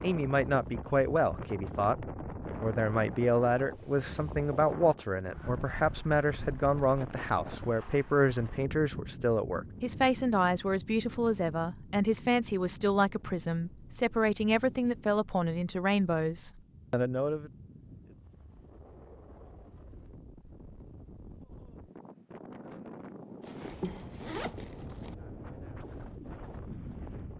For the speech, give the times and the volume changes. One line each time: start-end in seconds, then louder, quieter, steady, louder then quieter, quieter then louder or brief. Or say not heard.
0.0-17.5 steady.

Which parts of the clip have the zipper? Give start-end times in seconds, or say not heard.
23.4-25.1.